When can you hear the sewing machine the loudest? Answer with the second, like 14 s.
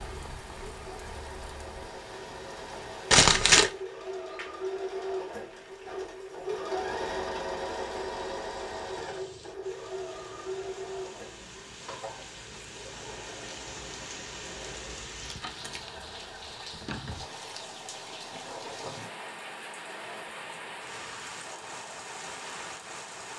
7 s.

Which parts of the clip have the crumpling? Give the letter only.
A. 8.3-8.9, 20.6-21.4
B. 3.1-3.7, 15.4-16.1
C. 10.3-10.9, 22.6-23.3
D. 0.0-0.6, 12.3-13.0
B.